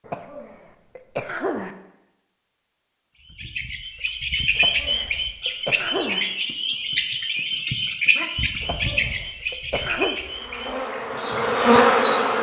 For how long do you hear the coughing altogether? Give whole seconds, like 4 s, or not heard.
5 s.